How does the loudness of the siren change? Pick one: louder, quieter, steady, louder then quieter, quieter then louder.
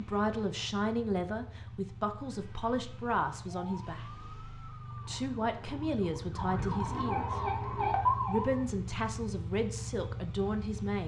louder.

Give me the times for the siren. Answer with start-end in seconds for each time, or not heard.
2.2-8.7.